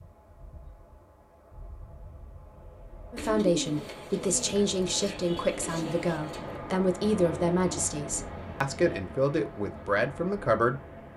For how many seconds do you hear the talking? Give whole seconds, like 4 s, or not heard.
8 s.